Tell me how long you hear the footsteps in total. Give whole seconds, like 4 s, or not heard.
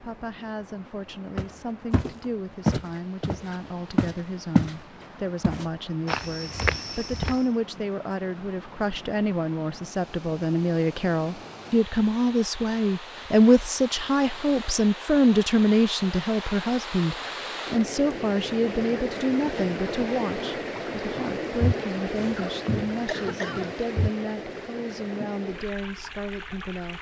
8 s.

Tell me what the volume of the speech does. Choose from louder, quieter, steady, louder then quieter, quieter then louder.
louder then quieter.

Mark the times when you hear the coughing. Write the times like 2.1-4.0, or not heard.
22.4-23.8.